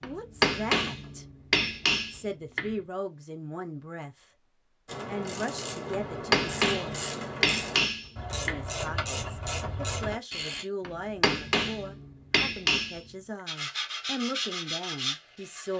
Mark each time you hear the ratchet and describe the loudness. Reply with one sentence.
You can hear the ratchet from 4.8 to 10.7 s, at a steady volume.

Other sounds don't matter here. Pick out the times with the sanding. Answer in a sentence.
You can hear the sanding from 13.4 to 15.7 s.